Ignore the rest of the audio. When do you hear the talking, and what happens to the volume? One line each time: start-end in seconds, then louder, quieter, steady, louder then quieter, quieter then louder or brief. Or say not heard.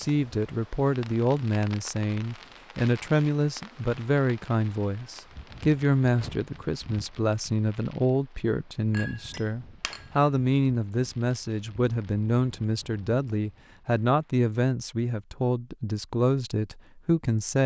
0.0-17.6 steady.